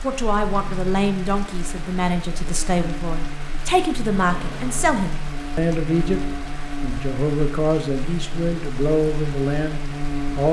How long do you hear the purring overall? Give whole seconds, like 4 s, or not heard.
not heard.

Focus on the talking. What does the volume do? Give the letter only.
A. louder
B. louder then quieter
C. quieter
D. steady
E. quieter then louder
D.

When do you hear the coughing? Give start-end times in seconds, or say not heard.
not heard.